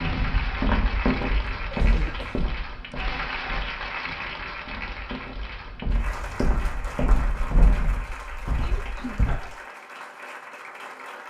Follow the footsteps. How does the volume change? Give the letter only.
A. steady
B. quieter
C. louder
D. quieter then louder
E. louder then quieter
D.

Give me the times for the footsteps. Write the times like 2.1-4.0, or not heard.
0.0-9.5.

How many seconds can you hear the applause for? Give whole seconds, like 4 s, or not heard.
11 s.